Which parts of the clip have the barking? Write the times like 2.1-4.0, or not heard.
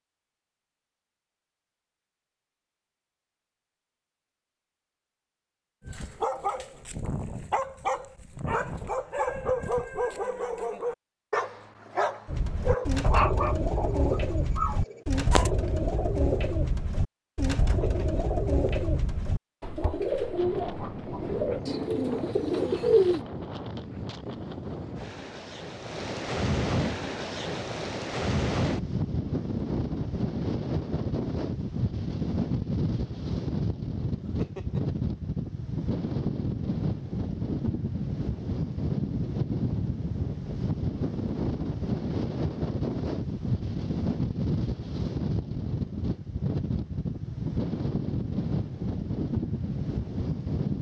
5.8-15.5.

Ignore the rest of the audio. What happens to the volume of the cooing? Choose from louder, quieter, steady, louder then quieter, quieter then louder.
steady.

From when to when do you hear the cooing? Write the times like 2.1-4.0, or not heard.
12.2-23.2.